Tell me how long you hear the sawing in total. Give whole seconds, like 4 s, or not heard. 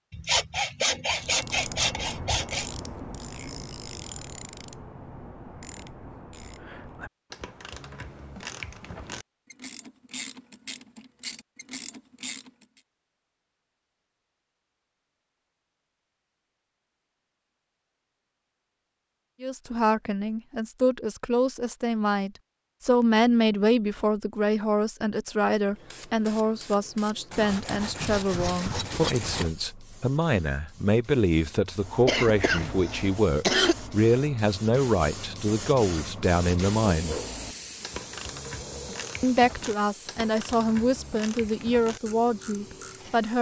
5 s.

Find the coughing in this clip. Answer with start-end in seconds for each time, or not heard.
32.0-33.8.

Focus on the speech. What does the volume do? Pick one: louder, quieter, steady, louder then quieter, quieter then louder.
steady.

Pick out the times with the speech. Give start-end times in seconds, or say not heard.
19.4-37.2, 39.2-43.3.